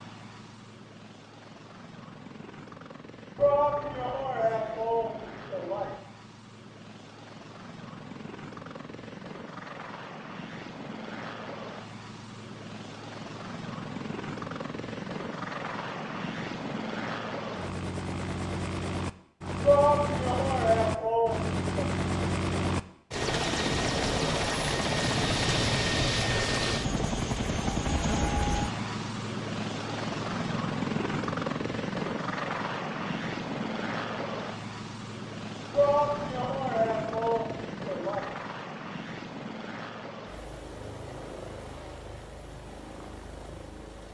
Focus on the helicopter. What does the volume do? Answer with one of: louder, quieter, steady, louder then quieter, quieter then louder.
louder then quieter.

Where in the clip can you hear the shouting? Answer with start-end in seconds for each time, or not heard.
3.4-6.0, 19.6-21.9, 35.7-38.3.